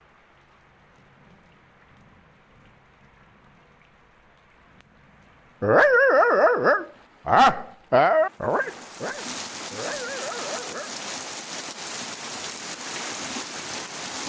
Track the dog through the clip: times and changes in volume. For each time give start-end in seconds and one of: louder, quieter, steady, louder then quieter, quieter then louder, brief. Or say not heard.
5.6-10.9 quieter.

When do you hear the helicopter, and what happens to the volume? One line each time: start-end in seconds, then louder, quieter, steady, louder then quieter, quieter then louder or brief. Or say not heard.
not heard.